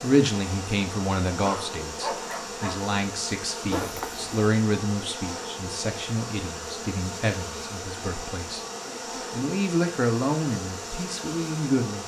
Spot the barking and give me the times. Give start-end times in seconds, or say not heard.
1.4-3.0.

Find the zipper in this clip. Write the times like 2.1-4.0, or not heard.
3.7-4.5.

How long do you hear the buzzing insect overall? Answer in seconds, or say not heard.
12 s.